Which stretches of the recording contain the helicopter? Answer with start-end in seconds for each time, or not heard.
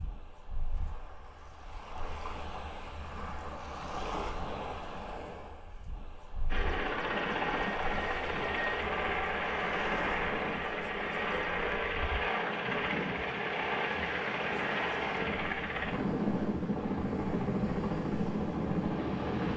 6.5-19.5.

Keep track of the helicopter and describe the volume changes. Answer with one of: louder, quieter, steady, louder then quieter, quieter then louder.
steady.